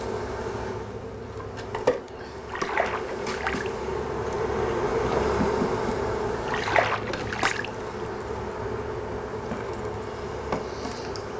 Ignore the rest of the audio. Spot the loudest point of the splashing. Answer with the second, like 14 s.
7 s.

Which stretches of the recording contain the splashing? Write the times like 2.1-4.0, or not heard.
2.5-3.7, 6.5-7.7.